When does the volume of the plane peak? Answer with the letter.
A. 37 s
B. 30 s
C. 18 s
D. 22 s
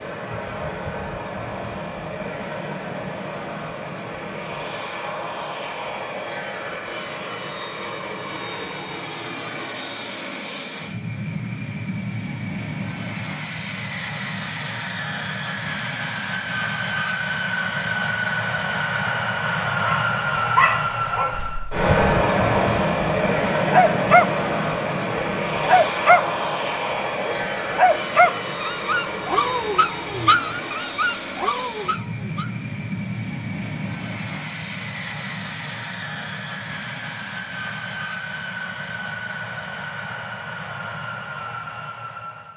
D.